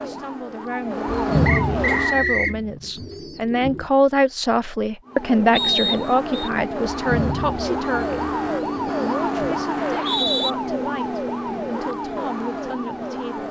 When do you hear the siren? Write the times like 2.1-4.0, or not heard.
0.0-2.2, 5.0-13.4.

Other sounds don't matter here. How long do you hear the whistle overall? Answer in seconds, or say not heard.
3 s.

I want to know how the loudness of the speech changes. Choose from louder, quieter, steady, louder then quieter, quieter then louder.
louder then quieter.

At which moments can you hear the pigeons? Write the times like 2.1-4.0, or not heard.
1.1-3.9, 6.9-9.7.